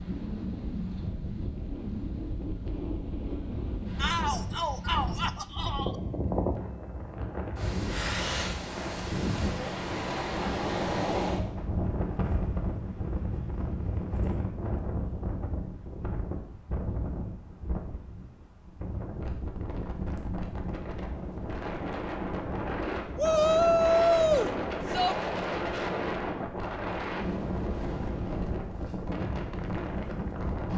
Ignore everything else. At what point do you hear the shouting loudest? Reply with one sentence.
The volume of the shouting peaks at 24 seconds.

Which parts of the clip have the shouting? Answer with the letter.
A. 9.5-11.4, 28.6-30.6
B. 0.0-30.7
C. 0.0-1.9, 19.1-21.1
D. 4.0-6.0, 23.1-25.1
D.